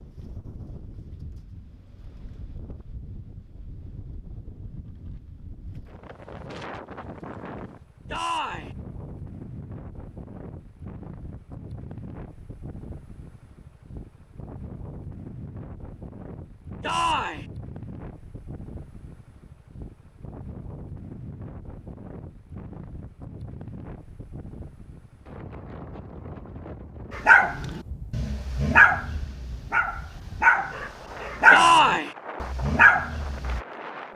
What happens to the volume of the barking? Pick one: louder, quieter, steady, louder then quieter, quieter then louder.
louder.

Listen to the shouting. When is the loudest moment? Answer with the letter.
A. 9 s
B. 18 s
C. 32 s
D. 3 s
C.